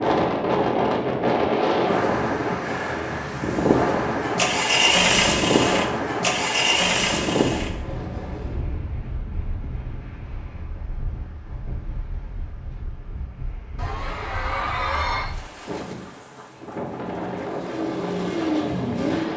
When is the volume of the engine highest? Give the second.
5 s.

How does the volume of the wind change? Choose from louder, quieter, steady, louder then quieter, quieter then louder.
quieter then louder.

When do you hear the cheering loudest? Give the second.
15 s.